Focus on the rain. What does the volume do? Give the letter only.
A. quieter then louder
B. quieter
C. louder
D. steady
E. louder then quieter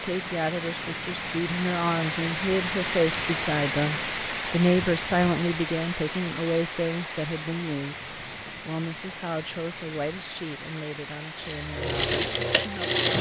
B.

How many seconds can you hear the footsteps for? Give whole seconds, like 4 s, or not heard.
not heard.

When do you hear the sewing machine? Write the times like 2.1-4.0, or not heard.
11.4-13.1.